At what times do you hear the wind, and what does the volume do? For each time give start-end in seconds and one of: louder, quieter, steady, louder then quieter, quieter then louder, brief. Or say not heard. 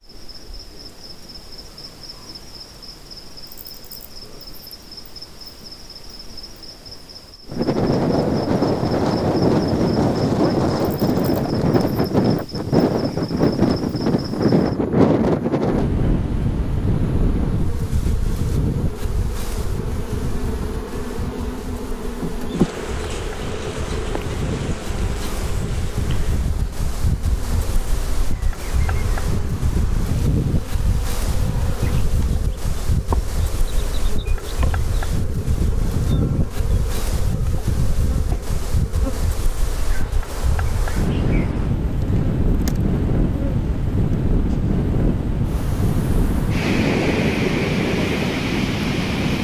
7.5-49.3 quieter then louder.